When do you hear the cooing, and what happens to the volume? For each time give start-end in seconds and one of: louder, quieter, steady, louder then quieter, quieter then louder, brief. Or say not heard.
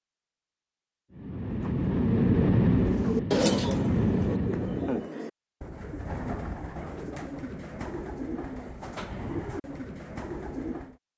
1.5-10.9 quieter.